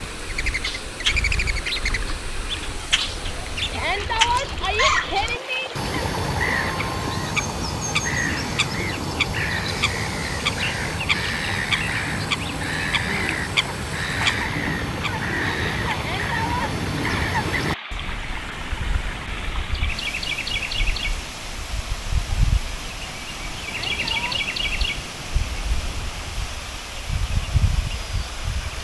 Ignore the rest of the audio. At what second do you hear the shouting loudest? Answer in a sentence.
The loudest moment of the shouting is at 4 seconds.